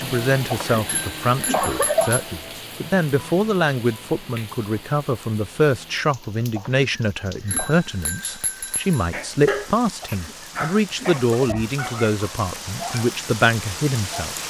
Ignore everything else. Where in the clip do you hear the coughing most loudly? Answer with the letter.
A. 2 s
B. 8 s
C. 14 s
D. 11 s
A.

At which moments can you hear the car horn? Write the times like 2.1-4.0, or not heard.
not heard.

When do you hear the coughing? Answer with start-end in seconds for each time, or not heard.
0.5-2.4, 6.5-7.8, 10.0-11.8.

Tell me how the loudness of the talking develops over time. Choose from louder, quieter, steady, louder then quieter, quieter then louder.
steady.